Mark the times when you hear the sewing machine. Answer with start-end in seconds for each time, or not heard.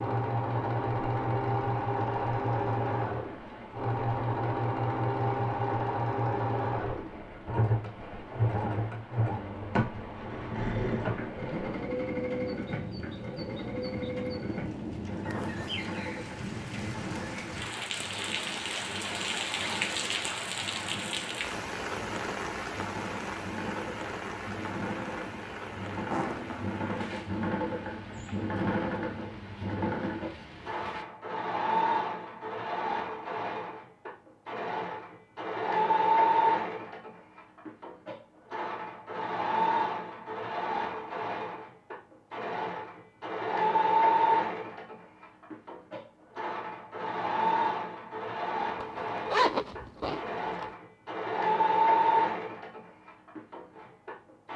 0.0-54.5.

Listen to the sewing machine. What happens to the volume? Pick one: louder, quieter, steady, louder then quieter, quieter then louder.
quieter then louder.